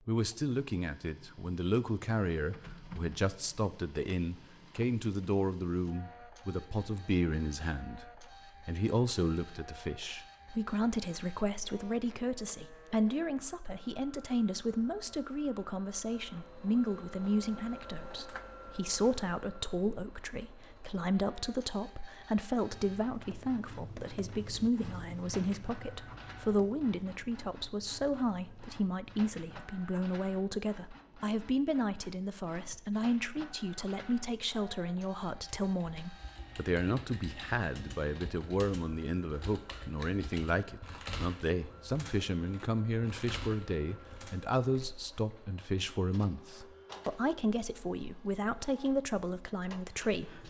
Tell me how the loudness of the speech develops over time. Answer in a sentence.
The volume of the speech stays about the same.